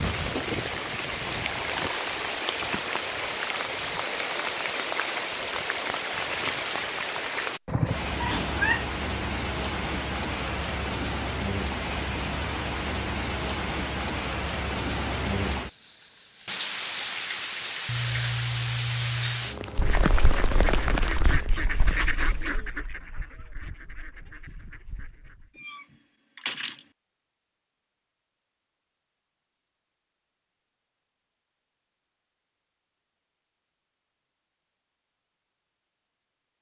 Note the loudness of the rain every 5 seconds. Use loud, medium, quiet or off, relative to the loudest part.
loud, loud, loud, loud, loud, off, off, off.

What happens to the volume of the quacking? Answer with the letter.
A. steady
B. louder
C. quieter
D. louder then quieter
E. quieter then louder
C.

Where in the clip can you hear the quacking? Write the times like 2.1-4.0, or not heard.
19.8-25.5.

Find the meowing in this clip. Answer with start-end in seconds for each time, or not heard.
8.2-8.9, 17.9-19.6, 25.6-26.8.